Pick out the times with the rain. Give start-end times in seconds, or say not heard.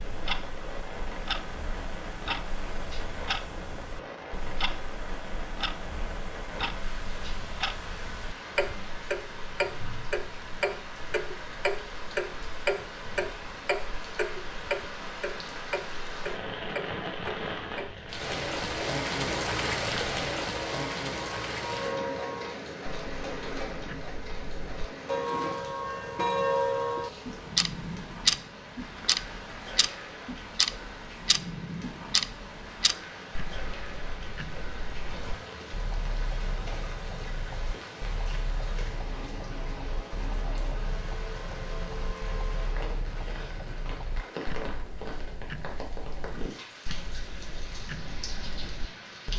0.0-49.3.